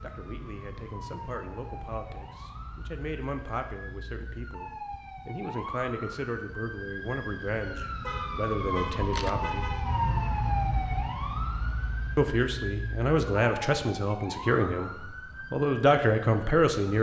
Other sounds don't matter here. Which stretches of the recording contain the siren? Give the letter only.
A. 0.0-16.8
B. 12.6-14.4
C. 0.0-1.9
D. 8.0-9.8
A.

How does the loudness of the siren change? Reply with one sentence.
The loudness of the siren goes up, then down.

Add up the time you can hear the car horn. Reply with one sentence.
You can hear the car horn for 2 seconds altogether.